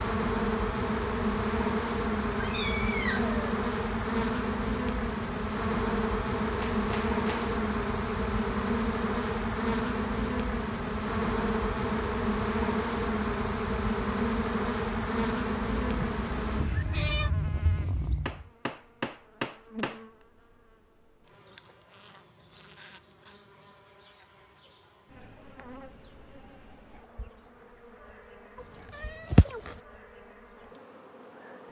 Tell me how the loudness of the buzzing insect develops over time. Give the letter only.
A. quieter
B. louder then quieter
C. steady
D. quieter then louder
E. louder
A.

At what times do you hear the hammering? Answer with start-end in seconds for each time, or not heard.
6.5-7.5, 18.2-20.1.